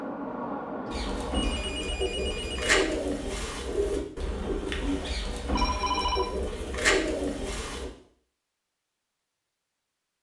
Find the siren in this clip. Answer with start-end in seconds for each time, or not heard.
not heard.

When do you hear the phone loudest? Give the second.
6 s.